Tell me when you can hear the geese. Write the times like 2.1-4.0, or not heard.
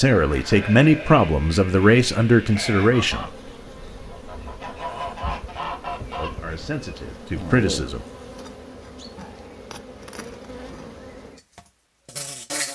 2.9-6.5.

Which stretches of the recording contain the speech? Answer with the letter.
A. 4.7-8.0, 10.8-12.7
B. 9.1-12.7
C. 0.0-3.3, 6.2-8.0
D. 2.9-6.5
C.